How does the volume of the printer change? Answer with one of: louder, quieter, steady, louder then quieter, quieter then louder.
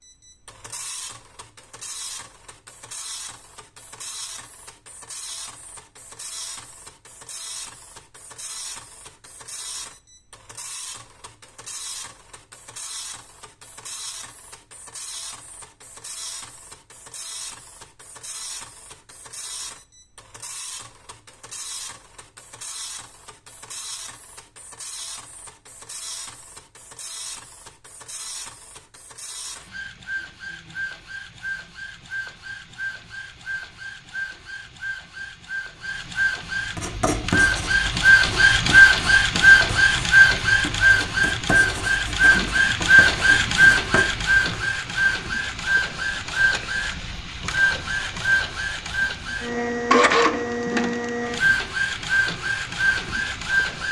louder.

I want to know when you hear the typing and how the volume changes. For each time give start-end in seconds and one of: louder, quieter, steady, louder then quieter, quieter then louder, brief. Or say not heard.
not heard.